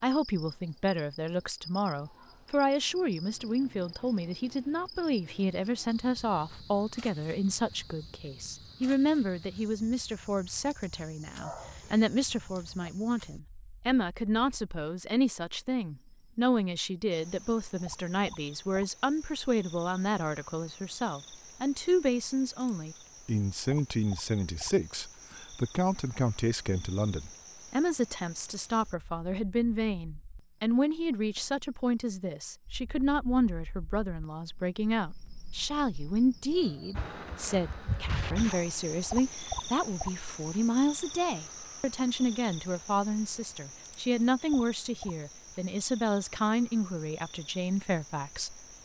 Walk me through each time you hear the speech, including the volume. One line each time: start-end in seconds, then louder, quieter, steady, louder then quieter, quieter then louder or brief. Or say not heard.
0.0-48.6 steady.